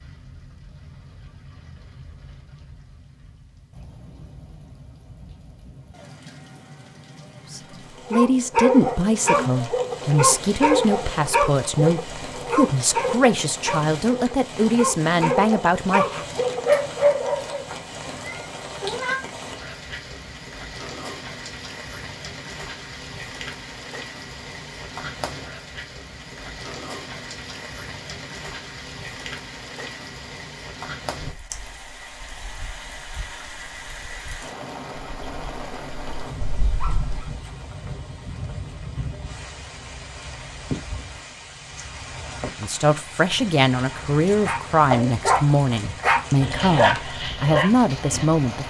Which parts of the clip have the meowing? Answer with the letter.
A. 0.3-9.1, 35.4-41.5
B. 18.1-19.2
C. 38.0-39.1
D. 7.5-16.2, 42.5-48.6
B.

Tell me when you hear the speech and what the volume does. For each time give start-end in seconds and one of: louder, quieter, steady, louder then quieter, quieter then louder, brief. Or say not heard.
7.5-16.2 steady
42.5-48.6 steady.